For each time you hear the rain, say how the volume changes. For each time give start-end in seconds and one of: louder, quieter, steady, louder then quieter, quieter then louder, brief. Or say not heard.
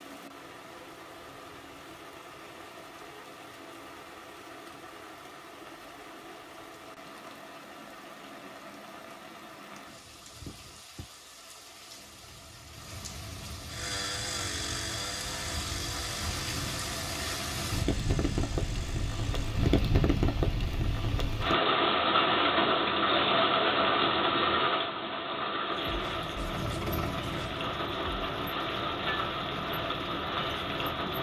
0.0-31.1 louder then quieter.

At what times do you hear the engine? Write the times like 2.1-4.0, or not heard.
13.7-19.6, 25.6-31.1.